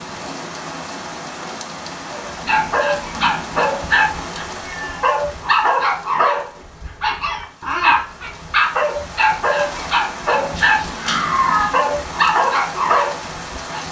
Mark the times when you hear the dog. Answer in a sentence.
You can hear the dog from 2.3 to 13.8 s.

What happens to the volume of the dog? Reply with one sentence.
The loudness of the dog stays about the same.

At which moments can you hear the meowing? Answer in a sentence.
The meowing can be heard from 10.6 to 11.8 s.